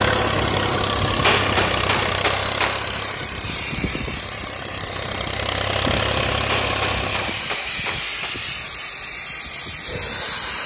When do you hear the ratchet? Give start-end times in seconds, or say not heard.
not heard.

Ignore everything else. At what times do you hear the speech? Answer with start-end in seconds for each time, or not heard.
not heard.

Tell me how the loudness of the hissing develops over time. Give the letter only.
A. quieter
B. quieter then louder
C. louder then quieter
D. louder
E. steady
E.